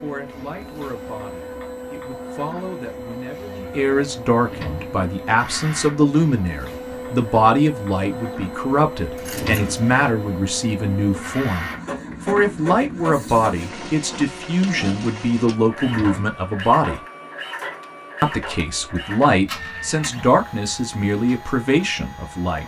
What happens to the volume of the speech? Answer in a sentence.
The loudness of the speech goes up.